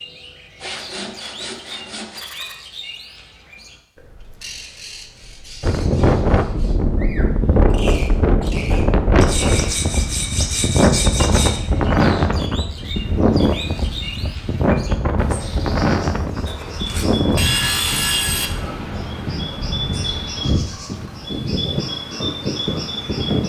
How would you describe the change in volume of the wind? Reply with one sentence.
The volume of the wind goes down.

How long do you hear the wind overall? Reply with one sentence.
The wind can be heard for 18 seconds in total.